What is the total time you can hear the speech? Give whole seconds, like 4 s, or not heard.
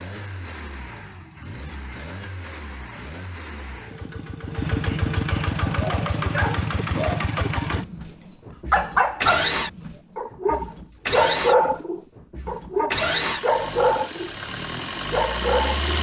not heard.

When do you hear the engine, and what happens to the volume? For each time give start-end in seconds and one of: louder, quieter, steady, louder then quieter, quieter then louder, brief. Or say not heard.
0.0-15.9 louder.